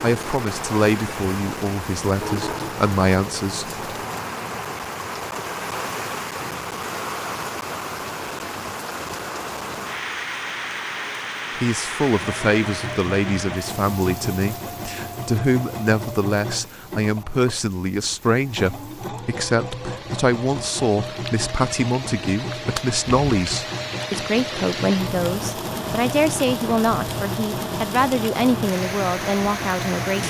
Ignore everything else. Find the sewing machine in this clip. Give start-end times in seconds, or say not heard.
12.0-30.2.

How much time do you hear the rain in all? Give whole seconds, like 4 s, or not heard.
30 s.